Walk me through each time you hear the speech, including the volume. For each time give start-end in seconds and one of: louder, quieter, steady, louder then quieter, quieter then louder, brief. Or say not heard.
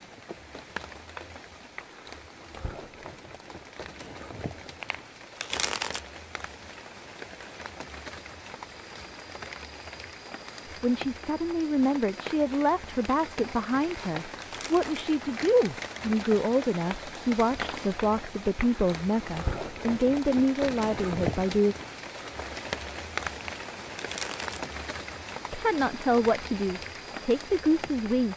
10.8-21.8 steady
25.5-28.3 brief.